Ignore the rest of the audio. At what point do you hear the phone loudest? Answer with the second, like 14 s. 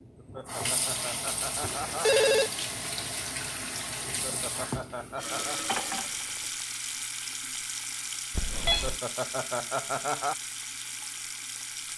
2 s.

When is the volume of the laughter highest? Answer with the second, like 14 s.
10 s.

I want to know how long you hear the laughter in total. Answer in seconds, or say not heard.
5 s.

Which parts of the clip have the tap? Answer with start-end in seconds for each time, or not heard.
0.0-11.9.